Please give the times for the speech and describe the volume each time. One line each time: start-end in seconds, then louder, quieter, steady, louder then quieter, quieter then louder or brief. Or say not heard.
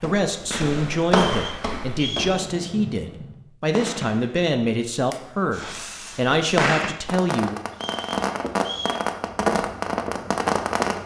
0.0-7.5 steady.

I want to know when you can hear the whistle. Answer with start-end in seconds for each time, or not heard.
1.3-2.4, 7.7-9.1.